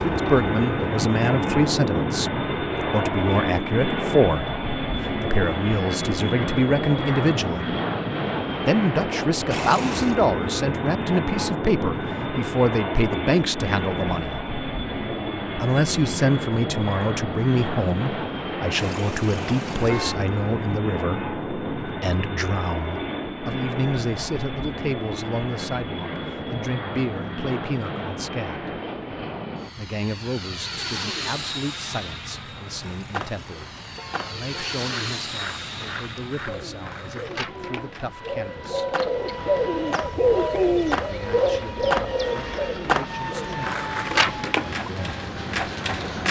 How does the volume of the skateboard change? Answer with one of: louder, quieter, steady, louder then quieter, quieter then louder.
louder.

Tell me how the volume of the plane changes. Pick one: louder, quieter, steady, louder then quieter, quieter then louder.
quieter.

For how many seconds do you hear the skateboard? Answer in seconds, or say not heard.
14 s.